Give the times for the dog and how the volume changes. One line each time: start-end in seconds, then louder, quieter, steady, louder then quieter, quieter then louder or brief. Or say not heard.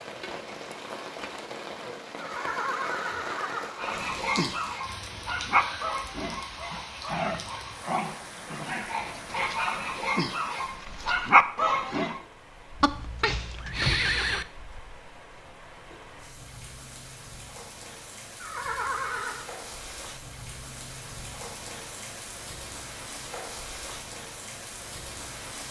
3.8-12.2 quieter then louder.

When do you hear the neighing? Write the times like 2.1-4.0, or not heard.
2.1-3.9, 12.8-14.4, 18.4-19.5.